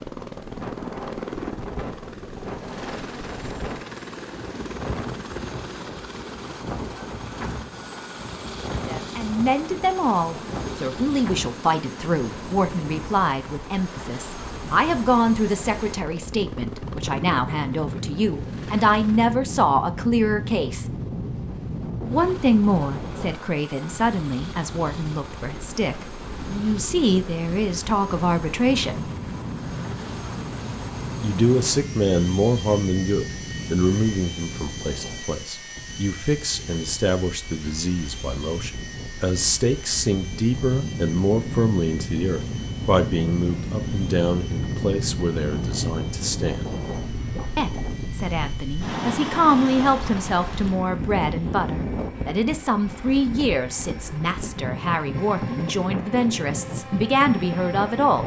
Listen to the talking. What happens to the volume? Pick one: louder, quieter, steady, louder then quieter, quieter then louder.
steady.